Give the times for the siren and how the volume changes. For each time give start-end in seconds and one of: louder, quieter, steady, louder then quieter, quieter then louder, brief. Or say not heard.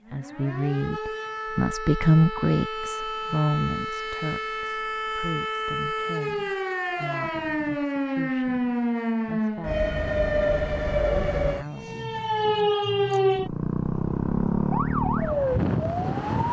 0.0-16.4 louder.